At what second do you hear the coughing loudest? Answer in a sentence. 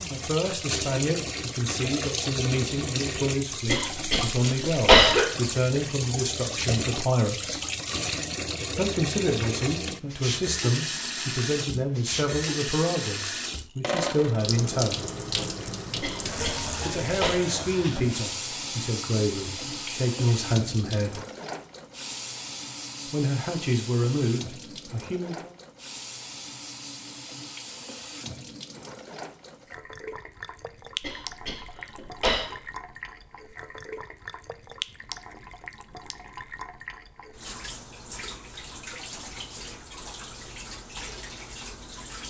The volume of the coughing peaks at 5 seconds.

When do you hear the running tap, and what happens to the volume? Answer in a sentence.
The running tap can be heard from 0.0 to 42.2 s, getting quieter.